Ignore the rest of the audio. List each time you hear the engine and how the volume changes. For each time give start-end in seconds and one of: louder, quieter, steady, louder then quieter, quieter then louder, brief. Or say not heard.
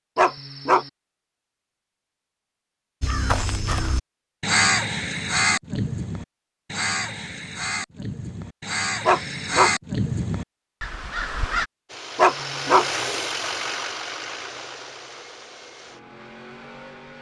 11.8-17.1 quieter.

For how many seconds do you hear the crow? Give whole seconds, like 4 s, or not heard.
9 s.